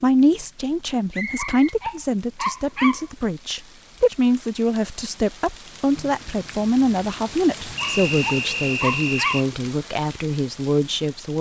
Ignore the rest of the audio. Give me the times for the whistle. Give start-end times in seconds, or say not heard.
1.1-1.8, 7.8-9.4.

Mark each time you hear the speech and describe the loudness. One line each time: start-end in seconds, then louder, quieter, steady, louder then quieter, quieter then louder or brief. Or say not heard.
0.0-11.3 steady.